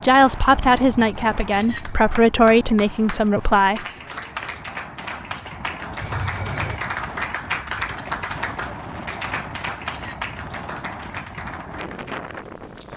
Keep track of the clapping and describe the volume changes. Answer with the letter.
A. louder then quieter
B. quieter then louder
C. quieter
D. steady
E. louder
A.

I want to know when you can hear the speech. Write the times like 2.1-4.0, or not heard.
0.0-3.9.